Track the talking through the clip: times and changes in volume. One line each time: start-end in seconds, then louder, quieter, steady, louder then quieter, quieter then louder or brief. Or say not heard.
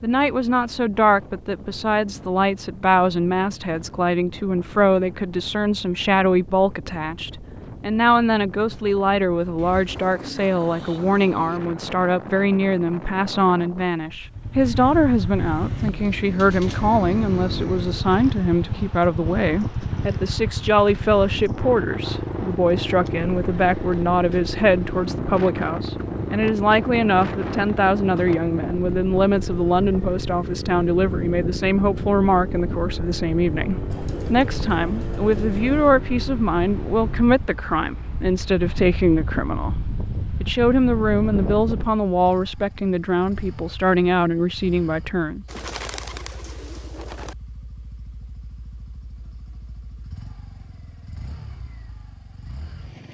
0.0-45.5 steady.